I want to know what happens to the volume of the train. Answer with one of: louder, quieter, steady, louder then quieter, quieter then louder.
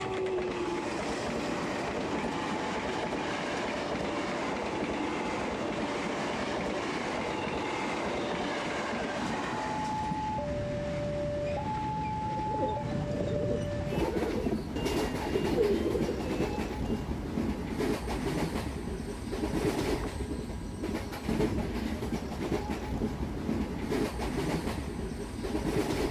steady.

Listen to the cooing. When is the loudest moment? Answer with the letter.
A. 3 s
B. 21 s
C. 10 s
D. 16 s
D.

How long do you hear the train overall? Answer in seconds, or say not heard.
26 s.